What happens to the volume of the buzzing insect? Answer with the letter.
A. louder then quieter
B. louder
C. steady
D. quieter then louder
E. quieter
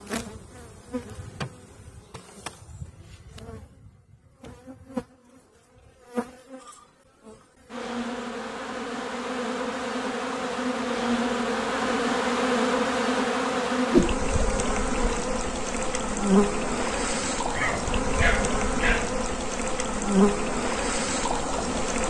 B.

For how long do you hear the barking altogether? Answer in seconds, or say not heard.
2 s.